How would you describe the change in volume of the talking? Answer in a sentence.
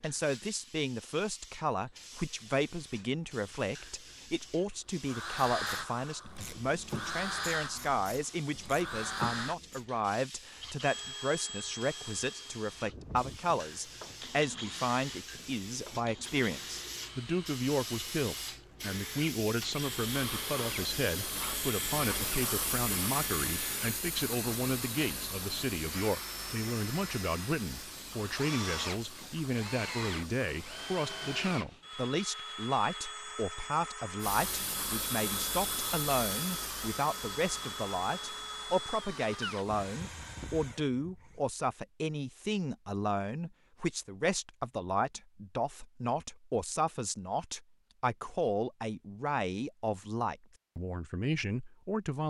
The loudness of the talking stays about the same.